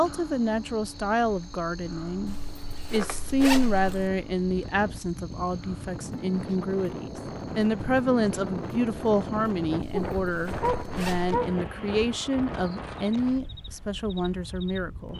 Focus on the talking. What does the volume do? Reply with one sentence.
The volume of the talking stays about the same.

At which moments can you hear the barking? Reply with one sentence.
You can hear the barking from 9.9 to 11.7 s.